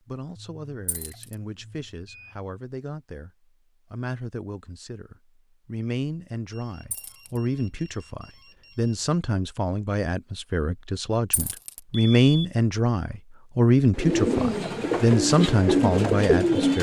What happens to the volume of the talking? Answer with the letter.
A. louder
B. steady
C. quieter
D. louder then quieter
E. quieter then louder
A.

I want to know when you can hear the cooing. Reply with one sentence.
The cooing can be heard from 13.9 to 16.7 s.